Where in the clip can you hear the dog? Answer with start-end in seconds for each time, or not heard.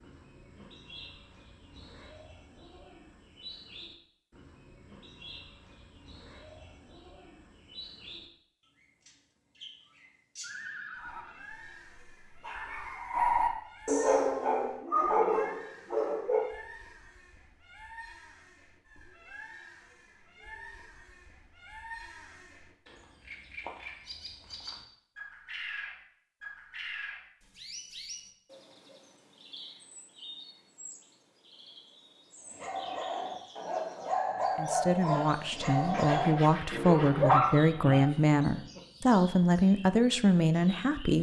10.9-16.5, 32.5-38.8.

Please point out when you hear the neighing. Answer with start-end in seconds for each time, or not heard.
10.4-11.5.